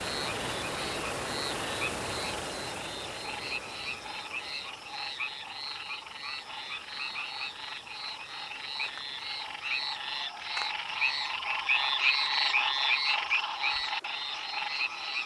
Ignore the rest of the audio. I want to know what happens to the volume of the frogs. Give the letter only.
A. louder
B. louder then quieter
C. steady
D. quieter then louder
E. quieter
A.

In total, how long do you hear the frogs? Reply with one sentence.
The frogs can be heard for 15 seconds in total.